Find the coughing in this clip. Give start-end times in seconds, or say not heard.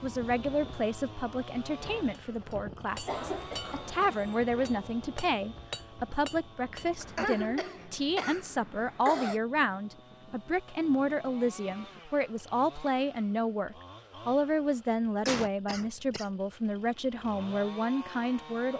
3.0-4.3, 7.0-9.4, 15.2-16.2.